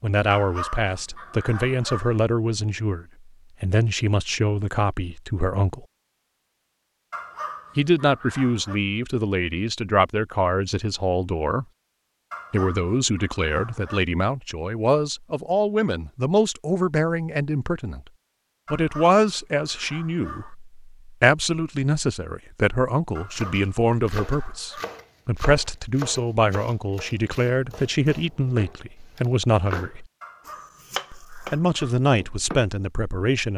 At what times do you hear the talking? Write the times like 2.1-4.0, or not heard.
0.0-5.8, 7.8-11.7, 12.5-18.0, 18.7-30.1, 31.1-33.5.